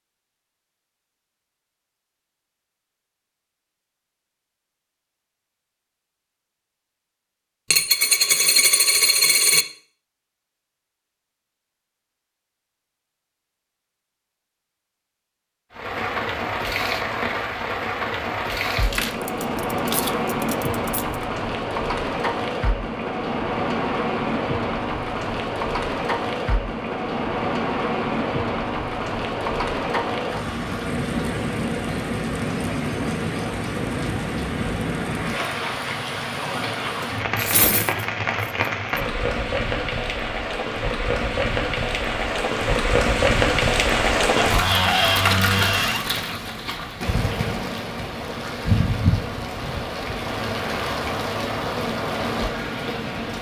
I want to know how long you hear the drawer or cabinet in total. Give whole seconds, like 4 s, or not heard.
2 s.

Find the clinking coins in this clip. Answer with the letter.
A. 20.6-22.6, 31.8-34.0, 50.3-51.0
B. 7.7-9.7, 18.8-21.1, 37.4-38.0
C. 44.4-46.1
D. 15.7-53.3
B.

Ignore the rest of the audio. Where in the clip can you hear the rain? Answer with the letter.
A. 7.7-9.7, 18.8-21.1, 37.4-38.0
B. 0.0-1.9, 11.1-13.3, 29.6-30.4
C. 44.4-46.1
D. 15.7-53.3
D.